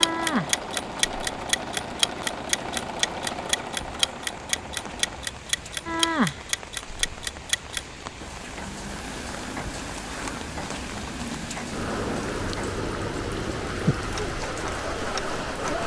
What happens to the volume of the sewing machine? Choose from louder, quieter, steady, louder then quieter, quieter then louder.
quieter.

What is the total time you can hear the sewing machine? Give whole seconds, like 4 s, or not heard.
5 s.